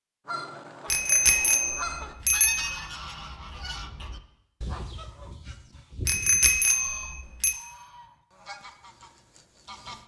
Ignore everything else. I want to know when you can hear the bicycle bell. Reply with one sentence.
You can hear the bicycle bell from 0.9 to 2.8 s and from 6.0 to 7.5 s.